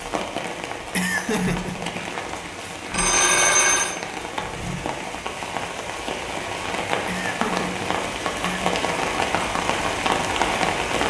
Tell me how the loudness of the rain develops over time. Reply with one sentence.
The volume of the rain goes up.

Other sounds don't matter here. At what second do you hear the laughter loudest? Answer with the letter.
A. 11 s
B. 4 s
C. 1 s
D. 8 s
C.